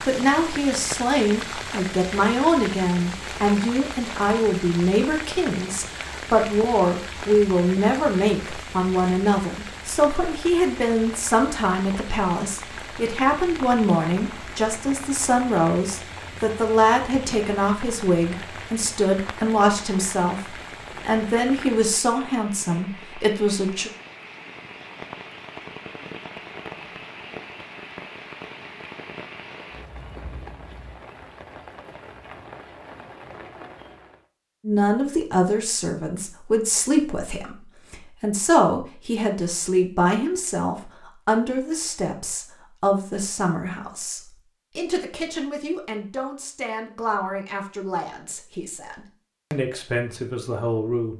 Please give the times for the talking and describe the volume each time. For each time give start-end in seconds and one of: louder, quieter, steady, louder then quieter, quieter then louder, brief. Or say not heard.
0.1-23.9 steady
34.6-51.1 quieter.